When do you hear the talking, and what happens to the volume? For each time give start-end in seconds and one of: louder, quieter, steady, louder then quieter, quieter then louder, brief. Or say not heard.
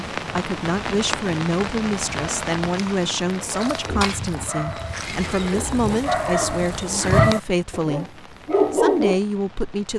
0.1-9.9 steady.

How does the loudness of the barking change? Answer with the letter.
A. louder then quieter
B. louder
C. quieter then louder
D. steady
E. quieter
B.